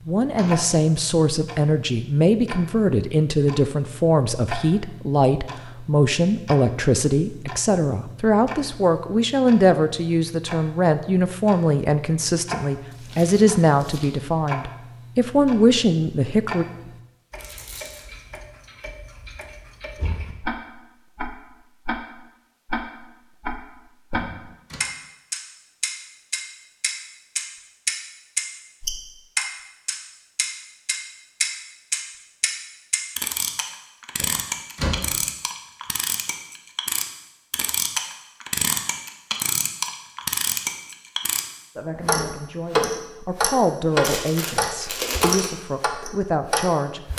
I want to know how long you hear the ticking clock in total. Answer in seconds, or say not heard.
47 s.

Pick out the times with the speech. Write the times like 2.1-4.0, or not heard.
0.1-16.6, 41.8-47.0.